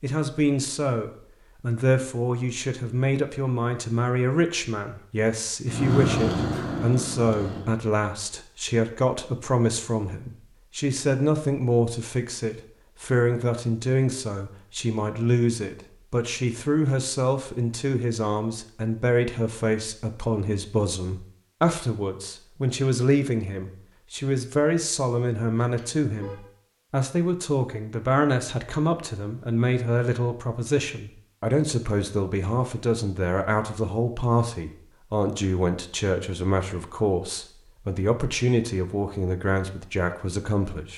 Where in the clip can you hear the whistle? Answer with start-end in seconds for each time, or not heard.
not heard.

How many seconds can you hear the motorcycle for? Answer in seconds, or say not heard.
2 s.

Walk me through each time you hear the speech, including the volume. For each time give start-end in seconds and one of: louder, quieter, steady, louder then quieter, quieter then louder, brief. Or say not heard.
0.0-40.9 steady.